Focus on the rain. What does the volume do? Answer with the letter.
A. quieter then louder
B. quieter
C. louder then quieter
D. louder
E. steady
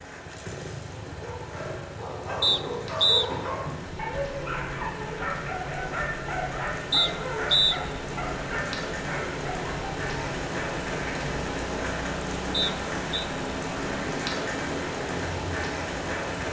D.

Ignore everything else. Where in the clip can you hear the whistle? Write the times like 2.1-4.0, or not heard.
2.4-3.2, 6.9-7.8, 12.5-13.2.